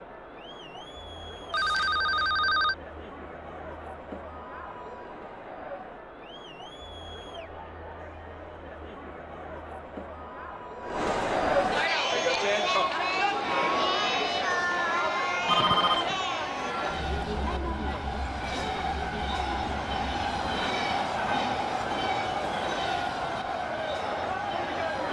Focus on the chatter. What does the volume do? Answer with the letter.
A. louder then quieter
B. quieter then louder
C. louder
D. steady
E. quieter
A.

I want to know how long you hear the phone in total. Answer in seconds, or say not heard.
2 s.